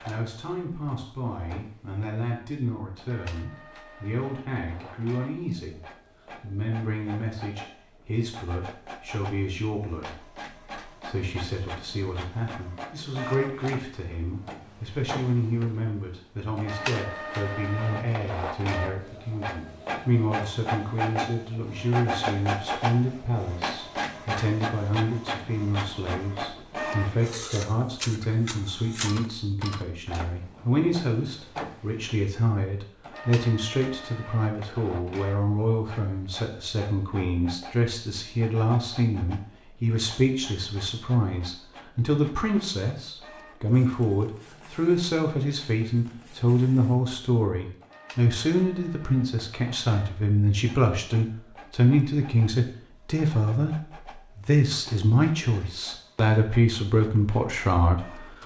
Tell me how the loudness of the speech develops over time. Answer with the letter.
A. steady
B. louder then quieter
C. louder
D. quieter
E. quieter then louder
C.